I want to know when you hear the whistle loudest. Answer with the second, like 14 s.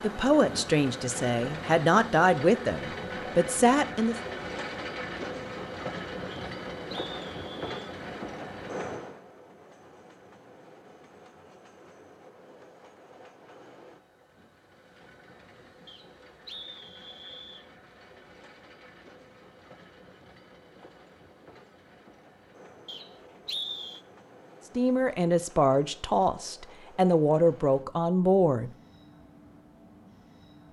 24 s.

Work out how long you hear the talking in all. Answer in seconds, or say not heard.
8 s.